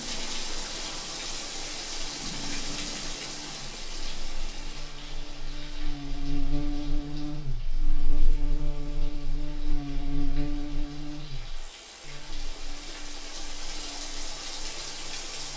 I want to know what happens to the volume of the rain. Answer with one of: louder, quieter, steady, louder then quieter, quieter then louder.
quieter then louder.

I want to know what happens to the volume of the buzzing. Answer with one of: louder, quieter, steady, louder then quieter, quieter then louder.
louder then quieter.